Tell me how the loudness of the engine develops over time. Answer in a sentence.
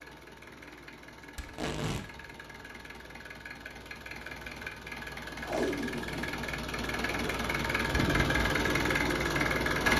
The volume of the engine goes up.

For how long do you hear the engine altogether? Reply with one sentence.
You can hear the engine for 10 seconds altogether.